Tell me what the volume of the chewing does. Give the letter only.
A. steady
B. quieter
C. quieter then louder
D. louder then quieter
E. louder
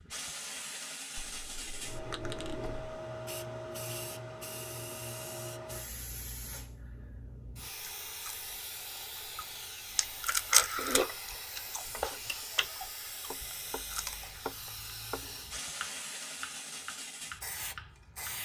D.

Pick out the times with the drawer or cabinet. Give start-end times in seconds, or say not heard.
1.2-3.0.